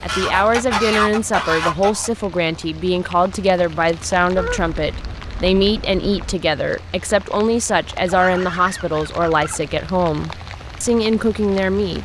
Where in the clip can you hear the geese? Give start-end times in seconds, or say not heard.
0.1-2.1, 4.3-6.3, 8.1-9.6.